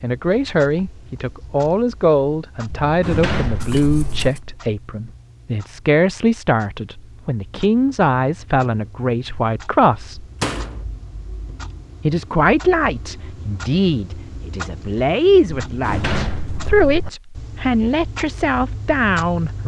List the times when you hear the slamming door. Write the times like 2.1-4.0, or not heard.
2.6-4.3, 10.4-10.8, 15.7-17.1.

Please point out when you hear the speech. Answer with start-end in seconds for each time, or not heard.
0.0-10.2, 12.0-19.6.